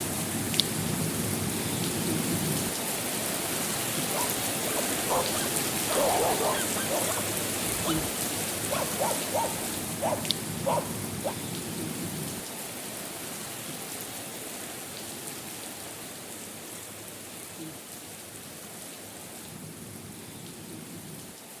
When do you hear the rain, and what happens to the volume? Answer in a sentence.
You can hear the rain from 0.0 to 21.5 s, getting quieter.